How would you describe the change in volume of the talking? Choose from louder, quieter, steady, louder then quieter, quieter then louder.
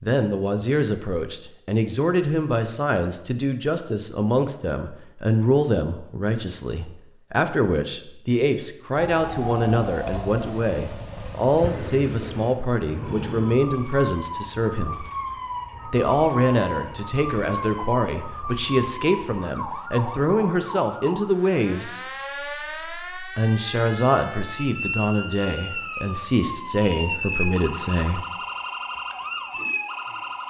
steady.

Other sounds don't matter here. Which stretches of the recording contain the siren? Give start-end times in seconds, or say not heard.
8.9-30.4.